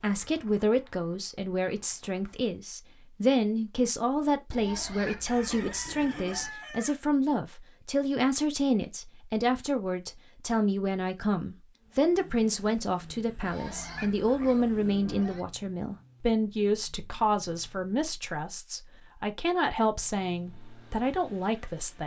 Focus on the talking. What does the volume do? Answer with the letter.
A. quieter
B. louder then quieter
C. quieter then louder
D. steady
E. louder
D.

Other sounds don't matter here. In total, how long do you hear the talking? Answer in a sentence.
The talking can be heard for 22 seconds in total.